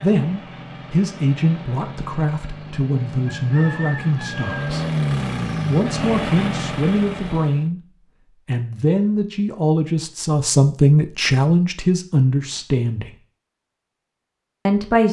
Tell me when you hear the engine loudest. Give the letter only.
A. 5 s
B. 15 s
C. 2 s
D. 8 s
A.